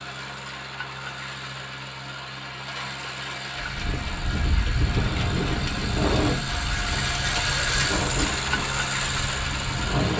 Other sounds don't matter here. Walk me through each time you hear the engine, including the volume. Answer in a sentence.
The engine can be heard from 0.0 to 10.1 s, getting louder.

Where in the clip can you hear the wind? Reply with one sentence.
The wind can be heard from 3.6 to 10.1 s.